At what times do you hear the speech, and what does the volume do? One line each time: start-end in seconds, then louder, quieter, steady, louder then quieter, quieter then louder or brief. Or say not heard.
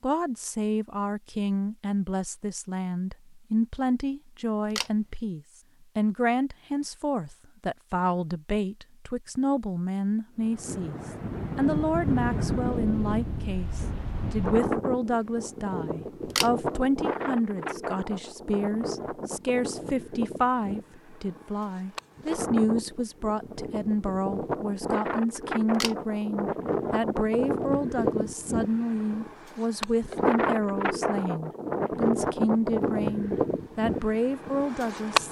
0.0-35.2 steady.